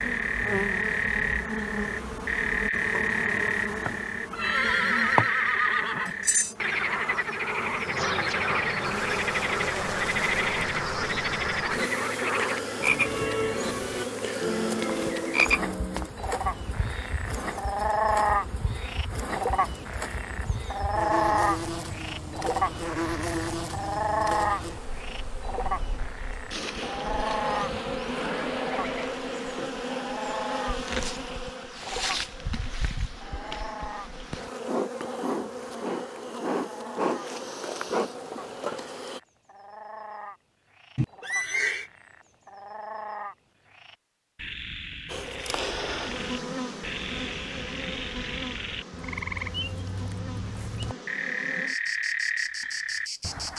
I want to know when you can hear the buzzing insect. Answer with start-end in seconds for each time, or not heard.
0.0-39.2, 45.0-53.5.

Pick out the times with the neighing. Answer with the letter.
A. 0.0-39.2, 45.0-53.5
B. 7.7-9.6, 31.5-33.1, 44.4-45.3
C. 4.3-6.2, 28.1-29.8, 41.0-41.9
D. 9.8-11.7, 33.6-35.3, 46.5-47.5
C.